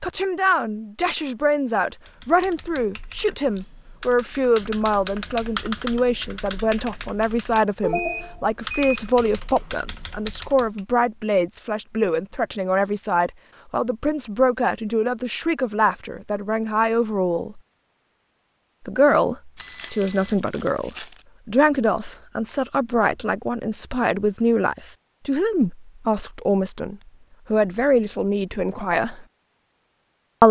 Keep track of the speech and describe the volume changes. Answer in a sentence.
The loudness of the speech stays about the same.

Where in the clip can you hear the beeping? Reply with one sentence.
The beeping can be heard from 7.5 to 9.1 s and from 19.6 to 20.4 s.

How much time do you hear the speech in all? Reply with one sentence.
You can hear the speech for 28 seconds altogether.